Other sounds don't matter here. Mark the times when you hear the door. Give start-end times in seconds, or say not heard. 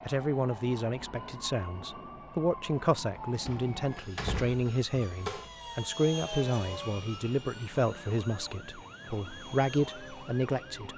3.5-5.5.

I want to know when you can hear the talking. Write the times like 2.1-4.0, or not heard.
0.1-10.9.